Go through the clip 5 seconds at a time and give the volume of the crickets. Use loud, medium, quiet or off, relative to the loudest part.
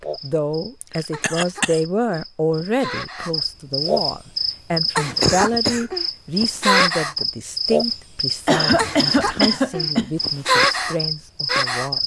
medium, loud, loud.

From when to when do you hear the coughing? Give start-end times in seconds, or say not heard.
0.8-1.8, 4.8-5.8, 8.4-10.1.